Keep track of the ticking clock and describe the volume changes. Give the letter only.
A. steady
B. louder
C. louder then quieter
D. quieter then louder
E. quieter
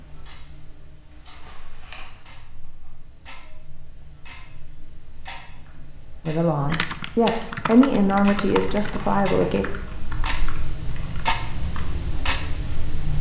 B.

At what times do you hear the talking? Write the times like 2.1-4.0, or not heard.
6.2-9.7.